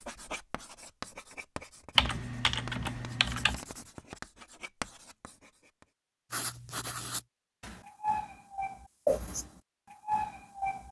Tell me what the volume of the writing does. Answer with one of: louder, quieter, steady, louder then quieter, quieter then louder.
louder.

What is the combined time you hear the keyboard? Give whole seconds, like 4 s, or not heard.
2 s.